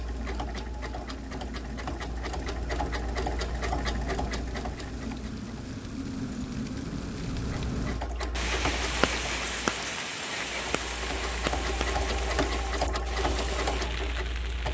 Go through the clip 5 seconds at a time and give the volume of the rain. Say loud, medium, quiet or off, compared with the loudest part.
medium, loud, loud.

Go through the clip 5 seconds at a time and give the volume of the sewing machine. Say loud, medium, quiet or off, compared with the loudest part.
loud, medium, loud.